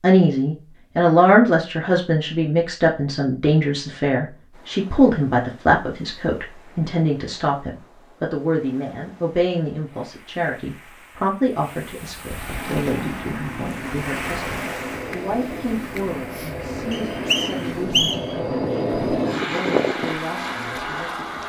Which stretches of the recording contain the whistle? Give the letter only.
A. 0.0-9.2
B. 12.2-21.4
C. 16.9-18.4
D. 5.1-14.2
C.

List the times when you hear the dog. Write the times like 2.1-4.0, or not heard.
not heard.